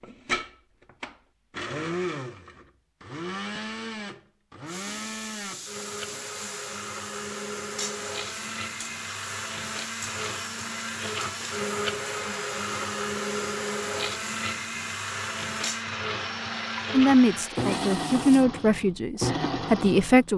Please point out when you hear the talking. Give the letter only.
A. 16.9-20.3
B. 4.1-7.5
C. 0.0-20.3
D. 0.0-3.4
A.